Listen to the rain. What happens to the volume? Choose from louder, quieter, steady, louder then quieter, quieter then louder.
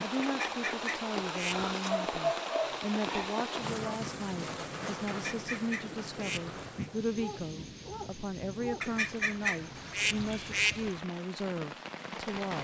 quieter.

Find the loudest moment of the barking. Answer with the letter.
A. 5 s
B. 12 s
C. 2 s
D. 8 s
C.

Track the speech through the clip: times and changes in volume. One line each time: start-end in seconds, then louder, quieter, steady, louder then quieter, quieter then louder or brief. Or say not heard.
0.0-12.5 steady.